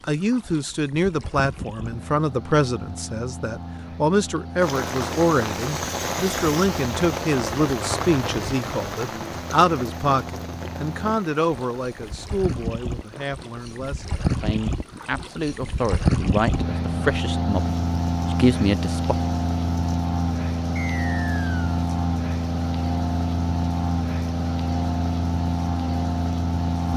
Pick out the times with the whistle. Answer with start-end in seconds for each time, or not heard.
20.8-21.8.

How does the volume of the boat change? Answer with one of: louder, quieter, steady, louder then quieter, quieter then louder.
louder.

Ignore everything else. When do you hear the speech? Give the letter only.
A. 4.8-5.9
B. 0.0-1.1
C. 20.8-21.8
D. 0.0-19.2
D.